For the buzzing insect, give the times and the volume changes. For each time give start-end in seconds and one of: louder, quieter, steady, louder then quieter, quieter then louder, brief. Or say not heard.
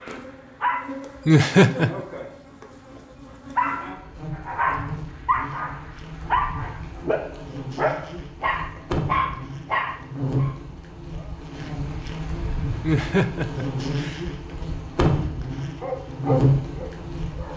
0.0-17.5 louder.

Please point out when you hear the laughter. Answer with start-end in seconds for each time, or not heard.
1.2-2.0, 12.8-14.2.